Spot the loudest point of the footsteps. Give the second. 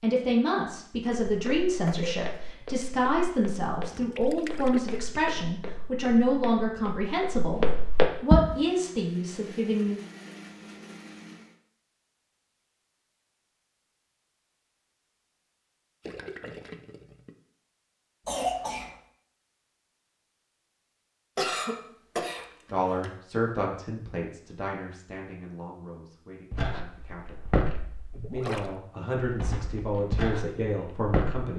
8 s.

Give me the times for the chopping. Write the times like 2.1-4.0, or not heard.
not heard.